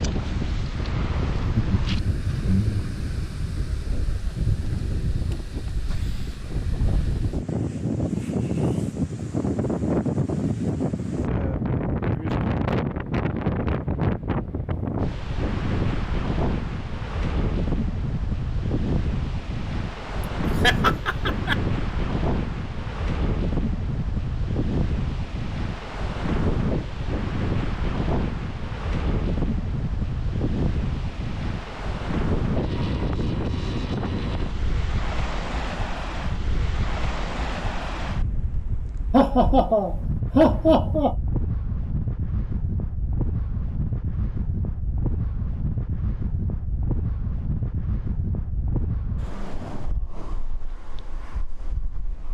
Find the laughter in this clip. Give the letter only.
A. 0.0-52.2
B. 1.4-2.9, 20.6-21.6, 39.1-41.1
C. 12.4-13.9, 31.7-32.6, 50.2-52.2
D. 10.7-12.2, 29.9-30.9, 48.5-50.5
B.